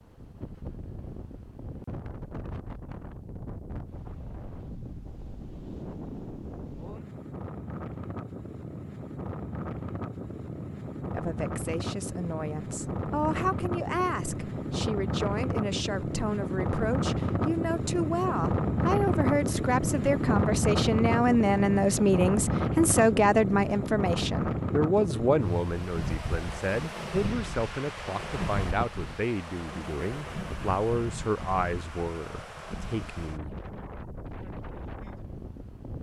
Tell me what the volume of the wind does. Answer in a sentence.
The volume of the wind goes up, then down.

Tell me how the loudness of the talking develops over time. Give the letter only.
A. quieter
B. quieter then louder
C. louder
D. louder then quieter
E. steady
D.